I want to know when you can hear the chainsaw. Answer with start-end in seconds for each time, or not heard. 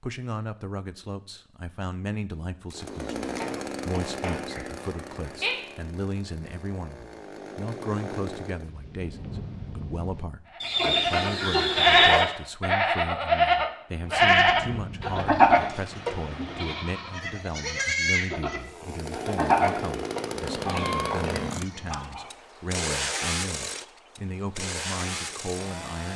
2.7-8.7, 18.6-26.1.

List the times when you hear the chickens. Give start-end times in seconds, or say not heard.
3.4-5.5, 10.6-12.2, 20.6-22.3.